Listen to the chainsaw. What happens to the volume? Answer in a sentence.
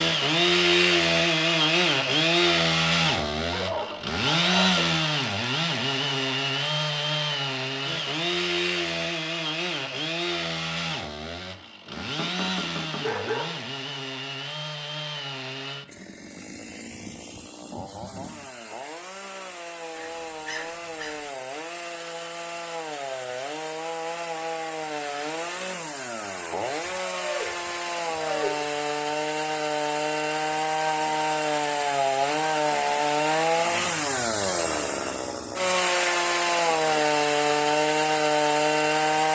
The volume of the chainsaw goes down, then up.